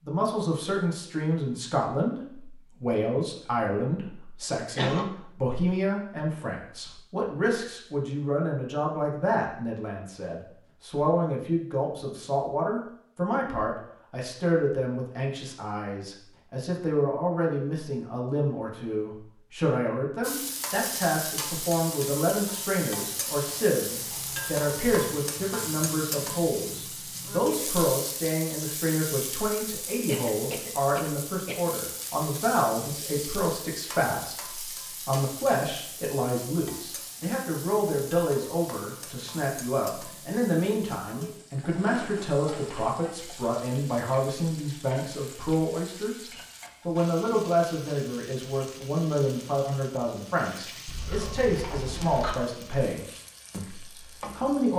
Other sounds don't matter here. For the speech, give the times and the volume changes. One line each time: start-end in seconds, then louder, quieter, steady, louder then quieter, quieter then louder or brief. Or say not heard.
0.1-54.7 steady.